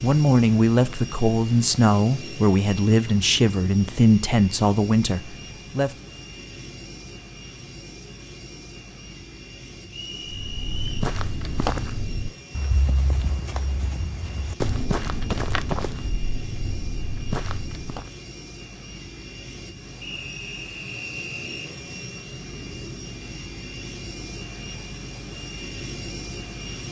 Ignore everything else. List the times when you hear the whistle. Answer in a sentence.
The whistle can be heard from 9.8 to 10.8 s and from 20.0 to 21.7 s.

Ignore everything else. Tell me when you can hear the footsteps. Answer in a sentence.
The footsteps can be heard from 10.2 to 18.1 s.